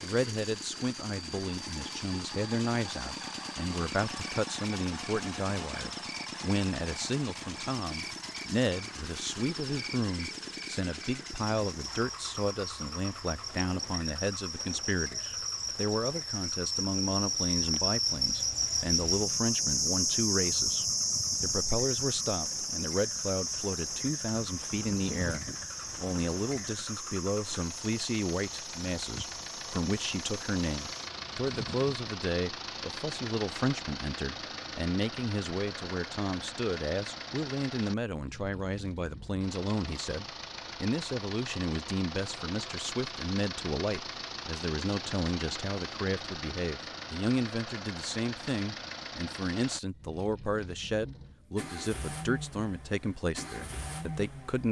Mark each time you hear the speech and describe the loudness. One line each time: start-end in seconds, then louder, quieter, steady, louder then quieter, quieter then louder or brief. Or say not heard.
0.0-54.6 steady.